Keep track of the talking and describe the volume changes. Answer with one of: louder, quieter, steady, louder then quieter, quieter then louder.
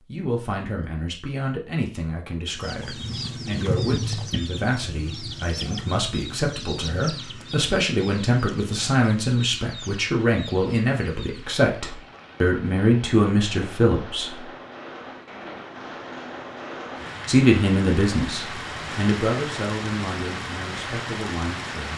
louder then quieter.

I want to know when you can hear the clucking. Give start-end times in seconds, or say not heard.
2.5-11.6.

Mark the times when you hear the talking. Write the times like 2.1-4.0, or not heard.
0.1-14.5, 17.2-21.9.